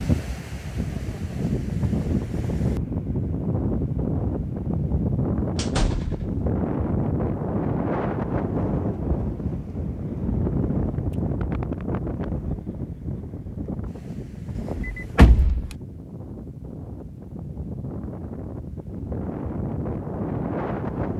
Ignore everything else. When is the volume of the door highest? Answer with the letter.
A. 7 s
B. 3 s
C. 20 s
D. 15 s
D.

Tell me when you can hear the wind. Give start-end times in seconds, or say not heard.
0.0-21.1.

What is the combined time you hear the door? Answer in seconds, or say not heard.
2 s.